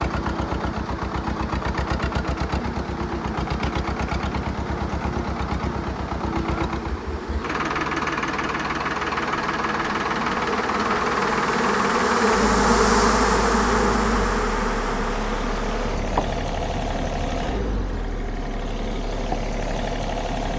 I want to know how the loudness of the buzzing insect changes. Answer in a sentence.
The volume of the buzzing insect goes up, then down.